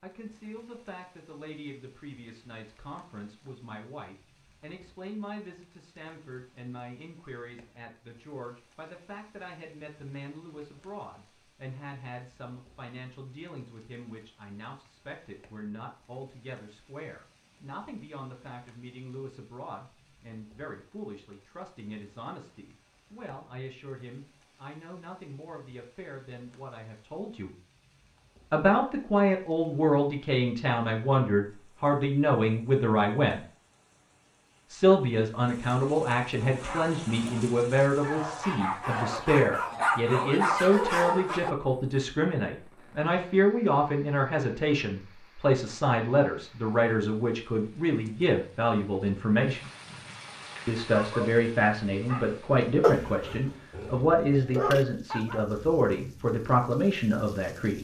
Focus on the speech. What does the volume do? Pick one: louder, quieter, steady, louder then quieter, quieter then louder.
louder.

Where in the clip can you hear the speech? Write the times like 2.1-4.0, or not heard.
0.0-27.5, 28.5-33.4, 34.7-49.7, 50.6-57.7.